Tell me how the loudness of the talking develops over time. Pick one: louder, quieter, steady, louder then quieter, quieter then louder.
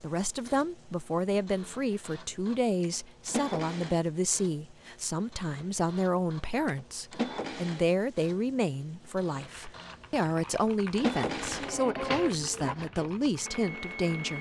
steady.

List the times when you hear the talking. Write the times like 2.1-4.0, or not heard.
0.0-14.3.